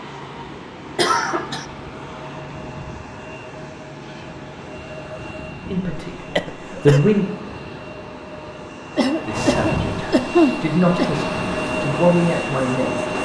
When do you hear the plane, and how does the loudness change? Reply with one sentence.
The plane can be heard from 0.0 to 13.2 s, getting louder.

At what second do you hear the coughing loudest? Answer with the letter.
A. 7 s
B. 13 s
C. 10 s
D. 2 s
C.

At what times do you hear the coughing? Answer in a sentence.
The coughing can be heard from 0.9 to 1.6 s, from 6.3 to 7.0 s and from 8.9 to 11.1 s.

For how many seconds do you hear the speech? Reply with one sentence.
The speech can be heard for 5 seconds in total.